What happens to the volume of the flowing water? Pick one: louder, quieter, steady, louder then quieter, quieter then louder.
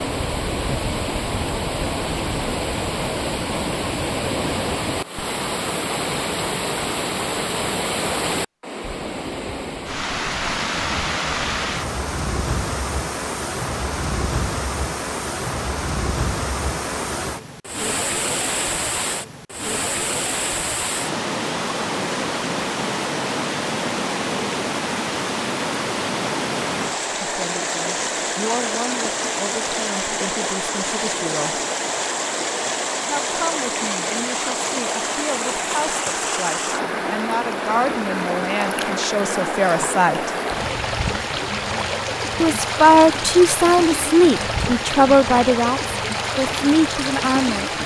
steady.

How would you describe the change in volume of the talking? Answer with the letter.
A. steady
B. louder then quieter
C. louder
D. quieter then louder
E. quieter
C.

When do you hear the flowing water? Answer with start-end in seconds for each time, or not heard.
0.0-47.8.